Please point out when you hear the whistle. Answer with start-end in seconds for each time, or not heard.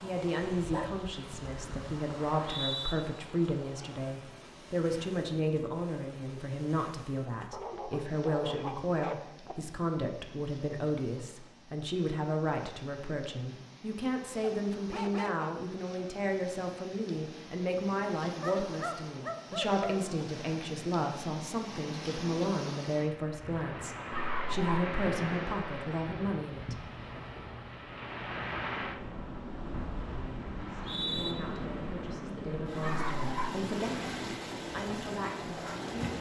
2.2-3.0, 30.6-31.4.